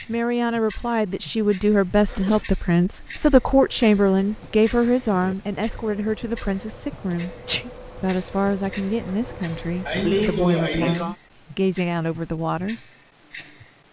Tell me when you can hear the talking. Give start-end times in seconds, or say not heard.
0.1-7.3, 8.0-12.8.